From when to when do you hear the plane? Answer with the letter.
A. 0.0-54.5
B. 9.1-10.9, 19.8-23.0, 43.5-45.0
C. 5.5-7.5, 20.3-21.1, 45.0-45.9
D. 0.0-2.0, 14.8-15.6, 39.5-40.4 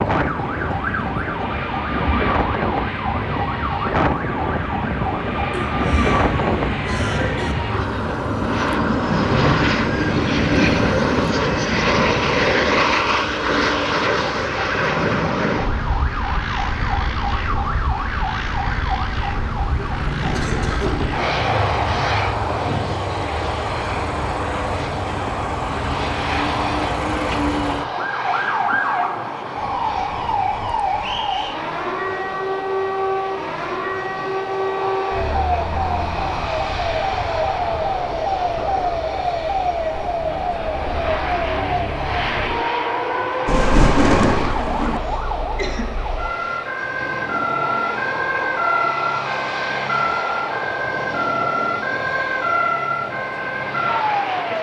A.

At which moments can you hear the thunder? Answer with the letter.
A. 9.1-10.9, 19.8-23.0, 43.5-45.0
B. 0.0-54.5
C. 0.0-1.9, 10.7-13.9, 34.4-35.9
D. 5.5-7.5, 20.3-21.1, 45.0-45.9
A.